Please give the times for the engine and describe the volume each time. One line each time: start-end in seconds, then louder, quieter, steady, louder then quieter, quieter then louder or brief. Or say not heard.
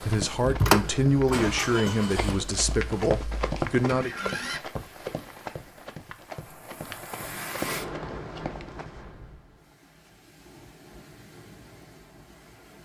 0.0-4.6 quieter then louder.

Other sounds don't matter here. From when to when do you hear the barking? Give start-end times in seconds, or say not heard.
not heard.